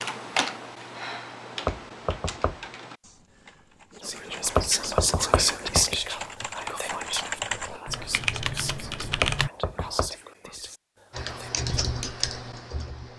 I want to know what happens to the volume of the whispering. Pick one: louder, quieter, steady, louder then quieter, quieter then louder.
quieter.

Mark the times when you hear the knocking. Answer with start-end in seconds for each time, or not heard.
1.6-2.6, 4.5-6.0, 9.2-10.1.